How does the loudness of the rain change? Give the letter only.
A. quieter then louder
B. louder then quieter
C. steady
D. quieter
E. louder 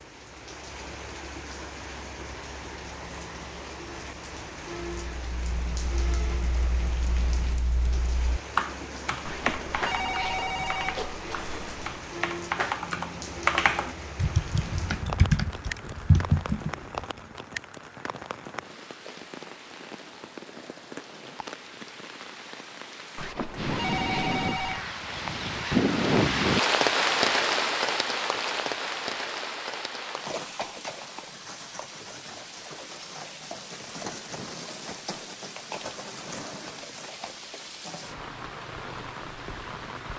B.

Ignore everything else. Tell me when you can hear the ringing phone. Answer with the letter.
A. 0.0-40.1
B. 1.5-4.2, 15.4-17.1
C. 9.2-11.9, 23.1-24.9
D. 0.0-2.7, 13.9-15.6
C.